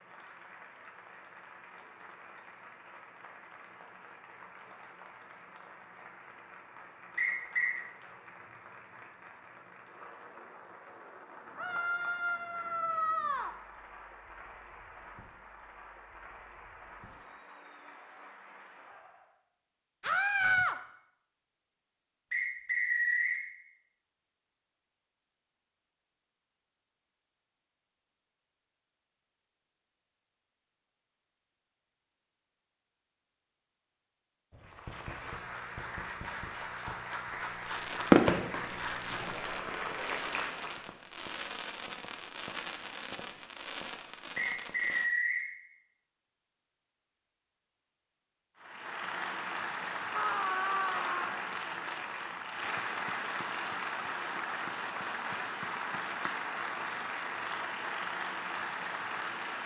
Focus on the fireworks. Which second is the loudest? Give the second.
38 s.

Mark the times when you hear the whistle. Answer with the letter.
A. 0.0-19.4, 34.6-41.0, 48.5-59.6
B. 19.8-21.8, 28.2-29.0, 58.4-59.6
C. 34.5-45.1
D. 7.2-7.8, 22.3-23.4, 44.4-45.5
D.